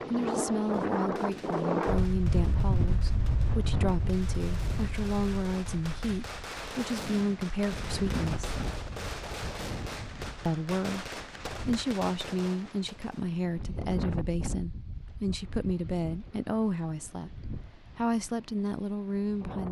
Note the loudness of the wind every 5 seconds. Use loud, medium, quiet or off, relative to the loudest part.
loud, medium, medium, quiet.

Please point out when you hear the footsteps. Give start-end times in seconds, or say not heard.
not heard.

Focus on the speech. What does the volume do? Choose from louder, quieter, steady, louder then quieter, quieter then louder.
steady.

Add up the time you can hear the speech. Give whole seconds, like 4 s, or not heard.
17 s.